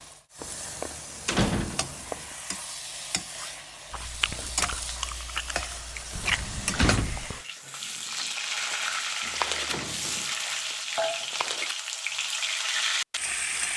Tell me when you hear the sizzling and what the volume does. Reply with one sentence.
The sizzling can be heard from 0.0 to 13.7 s, getting louder.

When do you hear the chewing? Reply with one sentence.
You can hear the chewing from 3.9 to 9.8 s and from 10.7 to 11.8 s.